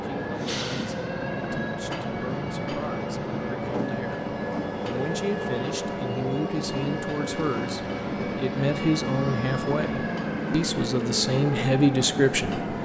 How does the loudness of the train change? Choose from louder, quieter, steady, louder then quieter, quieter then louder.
steady.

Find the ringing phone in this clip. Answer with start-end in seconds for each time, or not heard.
not heard.